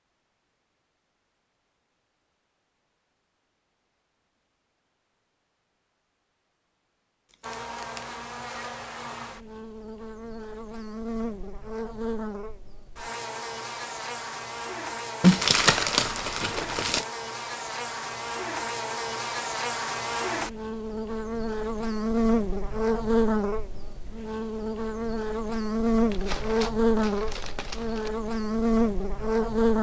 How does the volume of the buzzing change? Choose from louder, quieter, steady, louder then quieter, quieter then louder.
louder.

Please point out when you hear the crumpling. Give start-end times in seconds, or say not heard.
7.3-8.2, 15.2-17.1, 26.1-28.1.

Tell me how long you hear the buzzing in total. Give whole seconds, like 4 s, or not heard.
22 s.